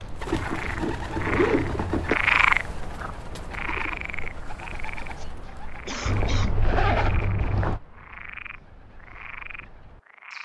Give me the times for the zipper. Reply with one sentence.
You can hear the zipper from 0.3 to 2.2 s and from 6.0 to 7.8 s.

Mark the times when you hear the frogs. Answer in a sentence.
The frogs can be heard from 0.2 to 10.4 s.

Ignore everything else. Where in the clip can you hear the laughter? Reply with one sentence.
The laughter can be heard from 5.2 to 6.5 s.